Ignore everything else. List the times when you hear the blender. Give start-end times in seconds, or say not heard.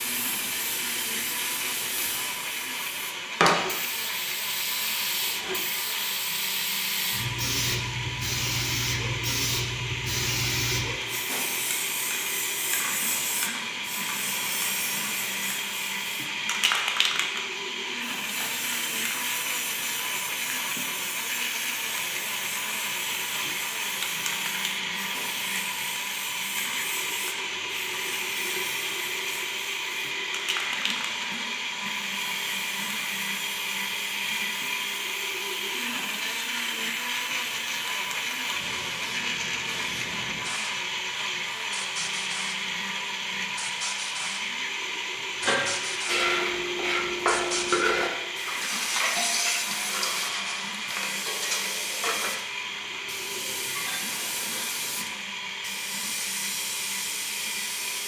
0.0-58.0.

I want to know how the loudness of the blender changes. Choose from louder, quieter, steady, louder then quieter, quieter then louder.
steady.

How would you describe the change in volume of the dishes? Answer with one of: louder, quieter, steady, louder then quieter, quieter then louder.
quieter.